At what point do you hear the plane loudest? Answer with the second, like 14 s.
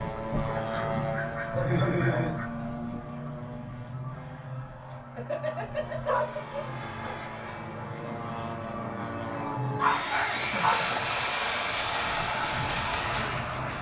11 s.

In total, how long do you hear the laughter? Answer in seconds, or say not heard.
3 s.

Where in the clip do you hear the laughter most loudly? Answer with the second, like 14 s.
2 s.